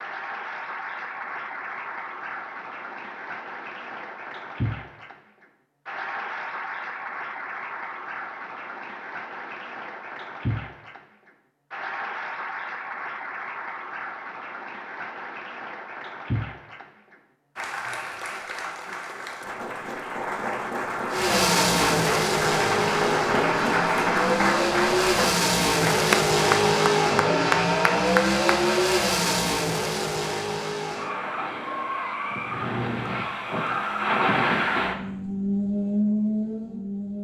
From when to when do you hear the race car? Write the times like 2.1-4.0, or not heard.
21.1-37.2.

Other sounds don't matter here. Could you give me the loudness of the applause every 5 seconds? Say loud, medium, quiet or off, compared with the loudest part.
medium, medium, medium, medium, loud, loud, off, off.